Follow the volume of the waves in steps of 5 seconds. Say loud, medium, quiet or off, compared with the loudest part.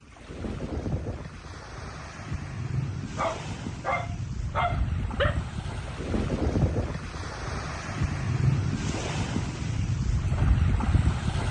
medium, loud, loud.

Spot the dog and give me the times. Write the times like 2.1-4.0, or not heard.
3.1-5.4.